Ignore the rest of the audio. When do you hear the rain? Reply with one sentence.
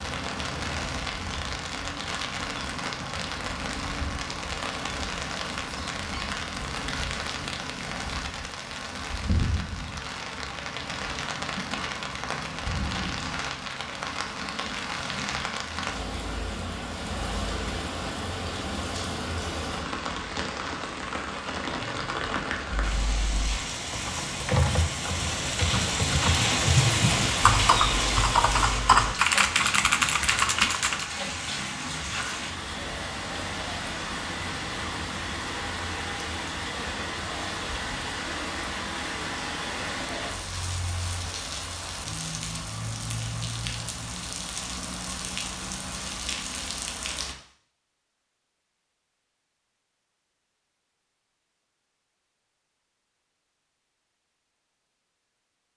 The rain can be heard from 0.0 to 47.4 s.